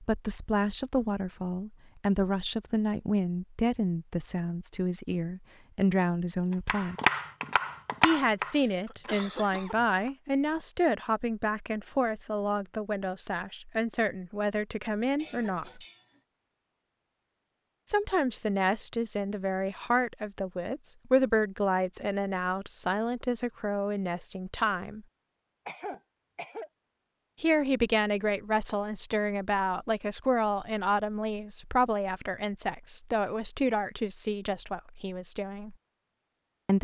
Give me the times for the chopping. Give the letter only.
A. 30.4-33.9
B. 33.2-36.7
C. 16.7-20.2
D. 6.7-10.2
D.